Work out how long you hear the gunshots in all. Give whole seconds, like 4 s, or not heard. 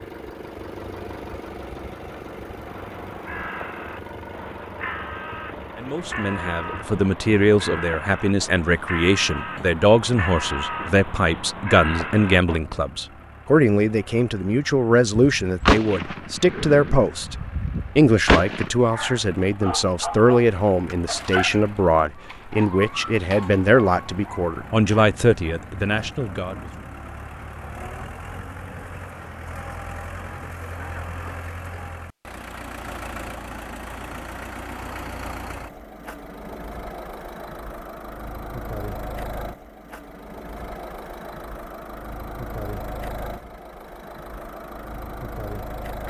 3 s.